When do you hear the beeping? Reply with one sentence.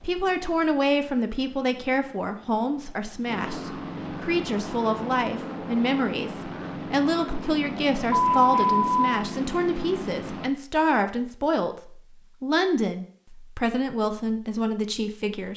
You can hear the beeping from 8.1 to 9.1 s.